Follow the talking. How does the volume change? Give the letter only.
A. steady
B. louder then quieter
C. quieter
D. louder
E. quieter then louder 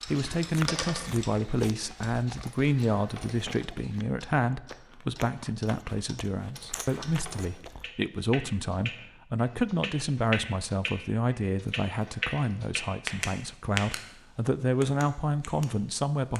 A.